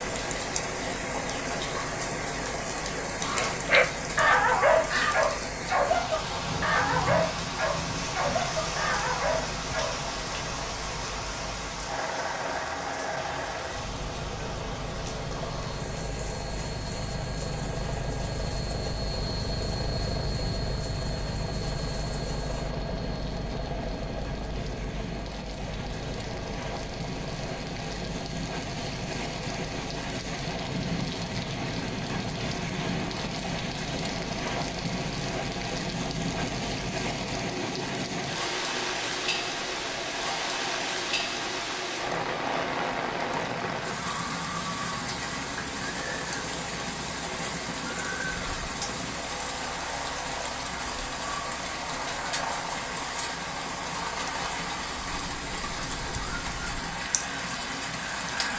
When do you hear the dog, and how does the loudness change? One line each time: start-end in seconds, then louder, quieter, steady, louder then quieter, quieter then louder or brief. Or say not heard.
3.3-10.0 quieter.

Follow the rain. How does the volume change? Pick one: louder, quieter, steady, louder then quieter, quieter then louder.
quieter then louder.